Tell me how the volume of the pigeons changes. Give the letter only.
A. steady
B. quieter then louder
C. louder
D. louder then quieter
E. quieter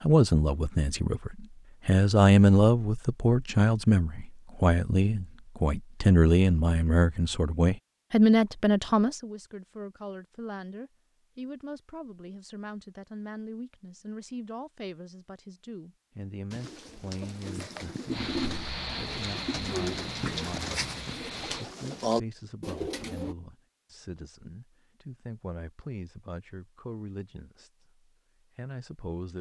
C.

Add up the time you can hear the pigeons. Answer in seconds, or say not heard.
7 s.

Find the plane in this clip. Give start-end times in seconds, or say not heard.
18.1-21.6.